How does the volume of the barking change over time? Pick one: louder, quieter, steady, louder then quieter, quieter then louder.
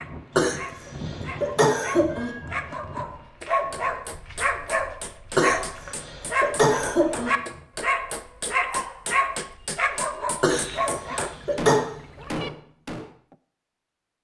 louder.